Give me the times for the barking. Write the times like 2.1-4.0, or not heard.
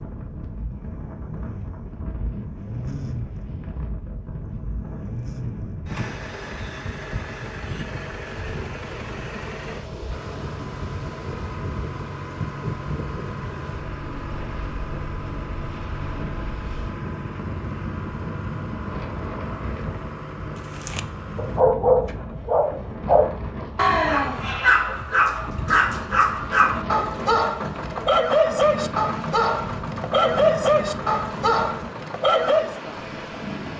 20.8-32.8.